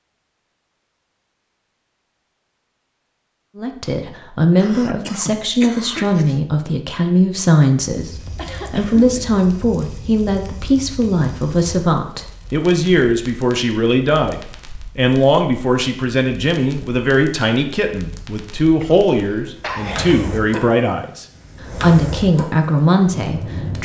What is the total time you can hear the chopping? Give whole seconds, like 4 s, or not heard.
not heard.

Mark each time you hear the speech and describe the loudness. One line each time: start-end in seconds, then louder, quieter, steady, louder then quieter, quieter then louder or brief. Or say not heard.
3.5-23.7 steady.